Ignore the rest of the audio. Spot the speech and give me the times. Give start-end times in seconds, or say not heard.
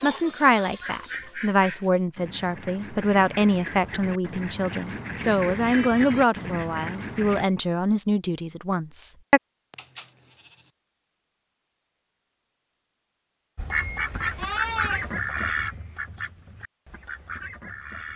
0.0-9.4.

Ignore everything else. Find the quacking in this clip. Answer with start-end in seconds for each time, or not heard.
0.0-7.5, 13.6-18.1.